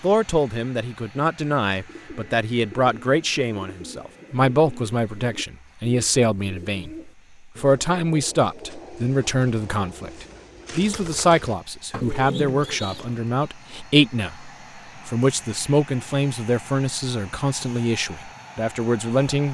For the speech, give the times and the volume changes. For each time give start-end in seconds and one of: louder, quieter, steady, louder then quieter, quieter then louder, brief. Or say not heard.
0.0-19.4 steady.